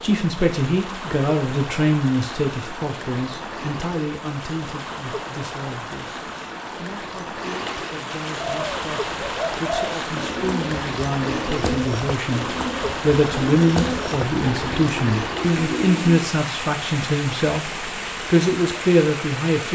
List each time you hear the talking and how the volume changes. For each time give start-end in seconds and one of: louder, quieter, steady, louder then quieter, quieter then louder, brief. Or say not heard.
0.0-19.6 quieter then louder.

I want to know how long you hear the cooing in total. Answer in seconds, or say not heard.
8 s.